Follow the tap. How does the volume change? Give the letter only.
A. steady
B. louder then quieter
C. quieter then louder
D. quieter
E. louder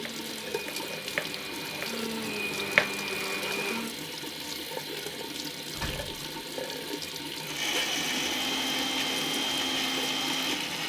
A.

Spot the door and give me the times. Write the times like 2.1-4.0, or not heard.
5.7-6.4.